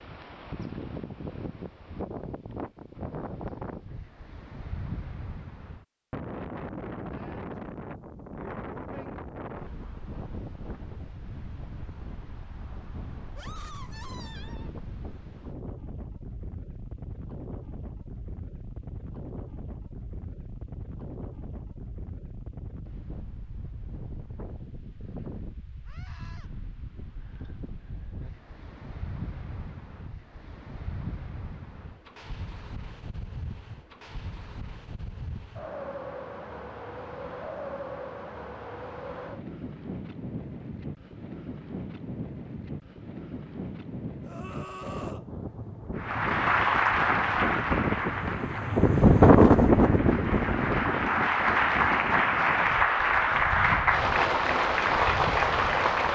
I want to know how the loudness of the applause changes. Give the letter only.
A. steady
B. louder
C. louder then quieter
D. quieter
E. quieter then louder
E.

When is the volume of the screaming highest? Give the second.
45 s.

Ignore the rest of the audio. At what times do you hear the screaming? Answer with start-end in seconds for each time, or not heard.
13.3-14.7, 25.9-26.5, 44.2-45.2.